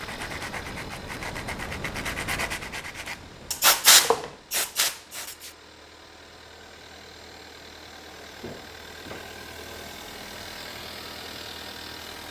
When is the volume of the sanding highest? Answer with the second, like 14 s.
4 s.